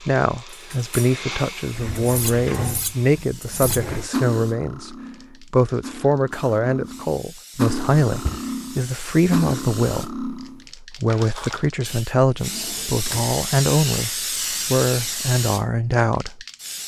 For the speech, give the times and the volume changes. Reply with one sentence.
You can hear the speech from 0.1 to 16.4 s, at a steady volume.